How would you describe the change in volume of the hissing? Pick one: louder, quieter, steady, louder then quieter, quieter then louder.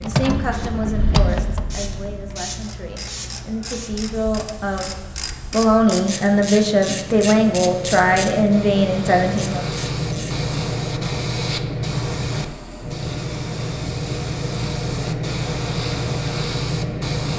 louder.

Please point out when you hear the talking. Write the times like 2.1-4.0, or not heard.
0.0-9.8.